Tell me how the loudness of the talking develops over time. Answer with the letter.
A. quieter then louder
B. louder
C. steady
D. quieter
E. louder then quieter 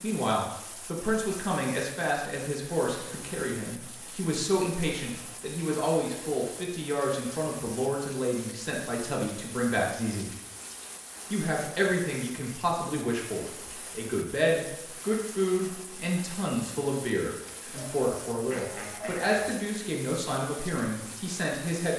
C.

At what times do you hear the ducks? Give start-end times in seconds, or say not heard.
17.7-19.6.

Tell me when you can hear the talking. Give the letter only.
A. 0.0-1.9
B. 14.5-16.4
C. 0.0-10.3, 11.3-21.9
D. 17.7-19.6
C.